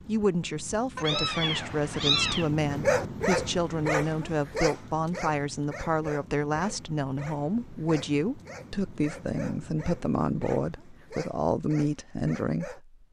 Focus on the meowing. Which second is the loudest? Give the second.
2 s.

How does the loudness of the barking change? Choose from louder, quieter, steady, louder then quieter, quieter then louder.
quieter.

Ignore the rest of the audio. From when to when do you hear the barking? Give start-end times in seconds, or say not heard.
2.7-12.8.